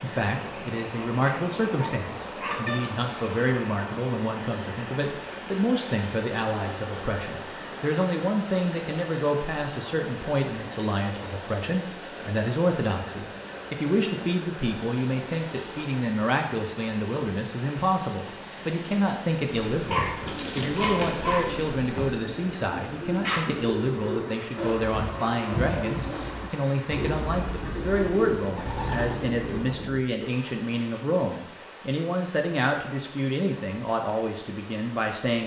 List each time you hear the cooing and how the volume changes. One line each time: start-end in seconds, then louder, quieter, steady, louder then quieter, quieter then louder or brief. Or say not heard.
19.5-30.0 steady.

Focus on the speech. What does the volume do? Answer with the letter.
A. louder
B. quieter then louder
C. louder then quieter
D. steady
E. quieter
D.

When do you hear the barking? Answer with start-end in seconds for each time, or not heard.
1.2-2.6, 19.9-21.6.